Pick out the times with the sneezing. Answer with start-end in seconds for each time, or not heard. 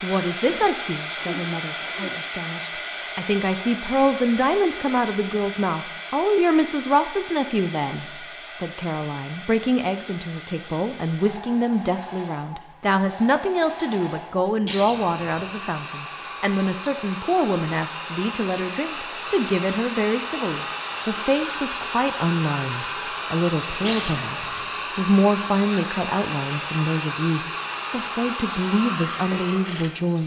0.5-2.1, 14.6-15.4, 23.8-24.7.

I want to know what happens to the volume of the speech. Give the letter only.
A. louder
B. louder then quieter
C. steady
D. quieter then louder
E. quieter
C.